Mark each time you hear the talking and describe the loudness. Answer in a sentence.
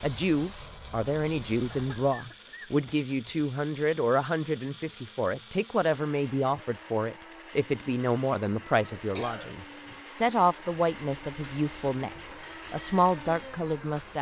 The talking can be heard from 0.0 to 14.1 s, at a steady volume.